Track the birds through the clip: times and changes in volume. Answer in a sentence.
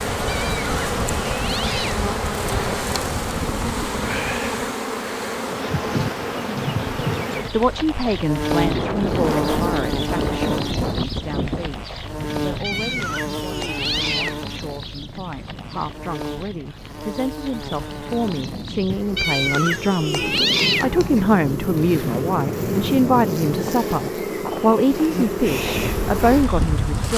The birds can't be heard in this clip.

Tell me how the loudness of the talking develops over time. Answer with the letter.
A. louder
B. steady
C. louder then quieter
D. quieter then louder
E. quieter
D.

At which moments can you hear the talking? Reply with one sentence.
The talking can be heard from 7.5 to 27.1 s.